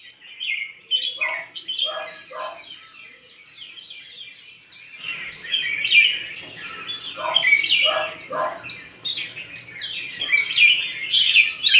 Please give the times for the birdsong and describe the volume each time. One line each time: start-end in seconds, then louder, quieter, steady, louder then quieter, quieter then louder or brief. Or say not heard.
0.0-11.7 quieter then louder.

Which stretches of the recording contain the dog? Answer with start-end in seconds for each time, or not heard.
1.1-2.7, 7.2-8.7.